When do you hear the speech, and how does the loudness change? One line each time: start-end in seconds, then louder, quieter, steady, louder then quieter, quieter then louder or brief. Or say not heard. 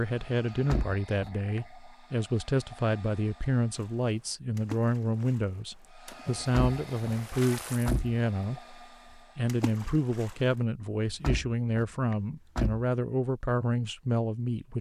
0.0-14.7 steady.